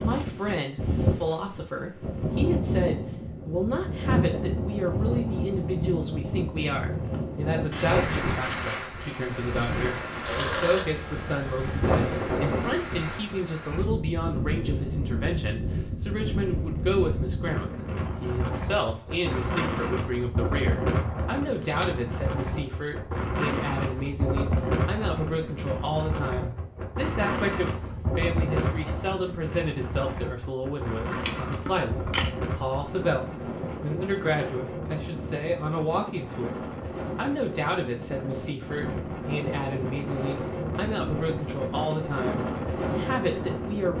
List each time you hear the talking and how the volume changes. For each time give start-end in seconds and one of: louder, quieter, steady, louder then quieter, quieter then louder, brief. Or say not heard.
0.0-43.9 steady.